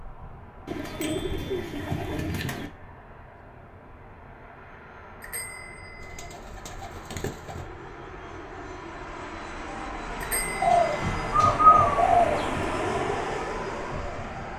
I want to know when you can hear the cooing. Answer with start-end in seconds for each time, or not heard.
0.7-2.7, 6.2-7.7, 10.6-12.6.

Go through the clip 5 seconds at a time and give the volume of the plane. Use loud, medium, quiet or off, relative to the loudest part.
quiet, medium, loud.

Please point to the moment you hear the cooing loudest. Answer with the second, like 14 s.
12 s.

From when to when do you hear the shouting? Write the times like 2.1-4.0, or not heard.
not heard.